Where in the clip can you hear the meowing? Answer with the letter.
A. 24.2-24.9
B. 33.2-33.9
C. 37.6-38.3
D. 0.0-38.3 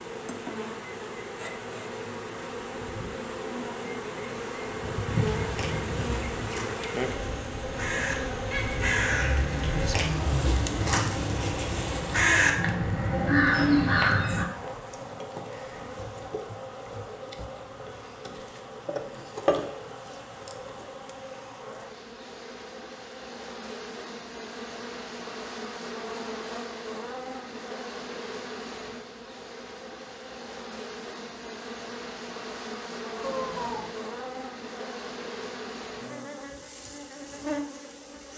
B.